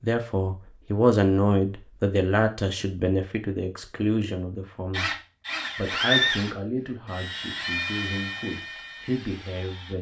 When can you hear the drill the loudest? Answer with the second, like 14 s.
6 s.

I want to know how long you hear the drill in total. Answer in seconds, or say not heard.
5 s.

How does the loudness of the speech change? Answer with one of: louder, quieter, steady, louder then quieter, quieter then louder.
quieter.